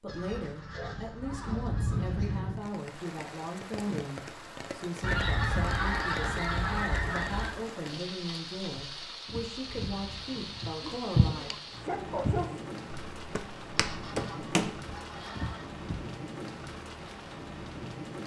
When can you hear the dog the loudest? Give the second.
12 s.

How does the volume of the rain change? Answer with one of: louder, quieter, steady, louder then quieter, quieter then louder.
steady.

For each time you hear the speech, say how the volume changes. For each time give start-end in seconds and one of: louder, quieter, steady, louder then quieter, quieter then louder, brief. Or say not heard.
0.0-11.7 steady.